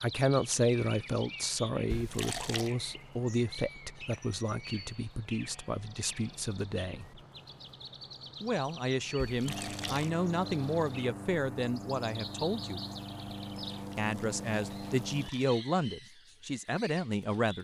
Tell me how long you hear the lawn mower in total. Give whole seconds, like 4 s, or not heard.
6 s.